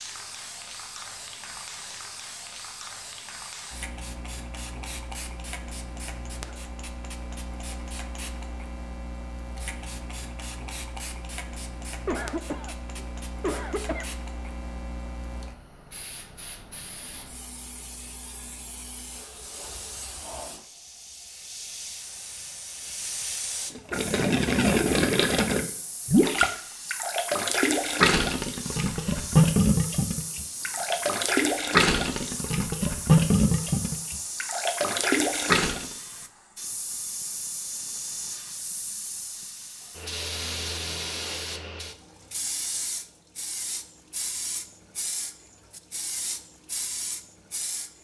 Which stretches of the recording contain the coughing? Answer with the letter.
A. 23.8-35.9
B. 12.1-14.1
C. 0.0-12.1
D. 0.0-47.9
B.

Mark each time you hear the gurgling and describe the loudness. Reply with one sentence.
The gurgling can be heard from 23.8 to 35.9 s, at a steady volume.